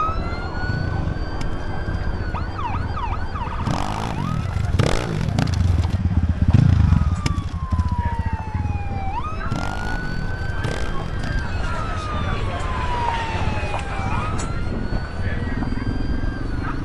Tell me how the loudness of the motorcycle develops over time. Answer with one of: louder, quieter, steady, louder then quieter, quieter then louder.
louder then quieter.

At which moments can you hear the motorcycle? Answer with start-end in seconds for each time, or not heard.
0.1-16.7.